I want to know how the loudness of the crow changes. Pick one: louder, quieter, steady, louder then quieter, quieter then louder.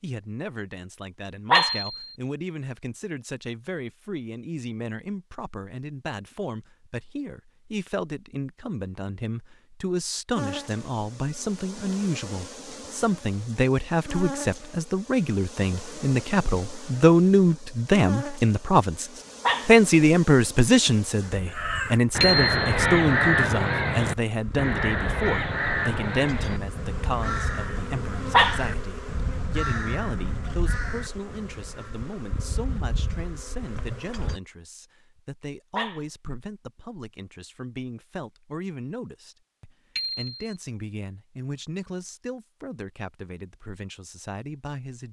quieter.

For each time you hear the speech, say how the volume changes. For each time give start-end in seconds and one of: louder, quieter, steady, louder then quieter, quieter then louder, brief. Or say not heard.
0.0-45.0 louder then quieter.